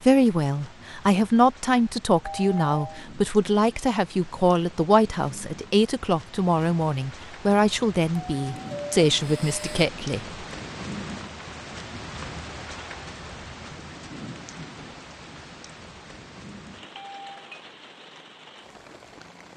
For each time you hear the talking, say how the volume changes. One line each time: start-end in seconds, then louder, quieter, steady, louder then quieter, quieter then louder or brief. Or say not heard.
0.1-10.2 steady.